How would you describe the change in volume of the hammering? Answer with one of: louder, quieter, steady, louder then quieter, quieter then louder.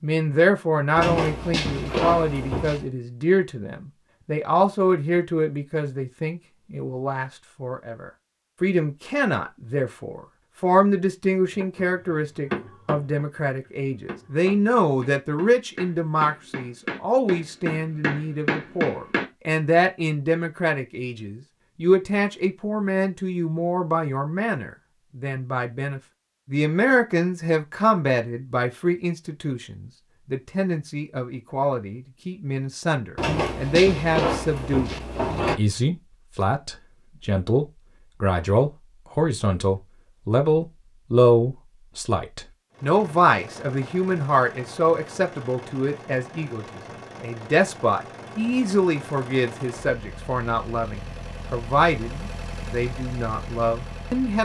quieter then louder.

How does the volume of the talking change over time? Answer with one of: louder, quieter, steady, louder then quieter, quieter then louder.
steady.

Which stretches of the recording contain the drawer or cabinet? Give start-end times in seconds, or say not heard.
0.9-2.9, 33.1-35.6.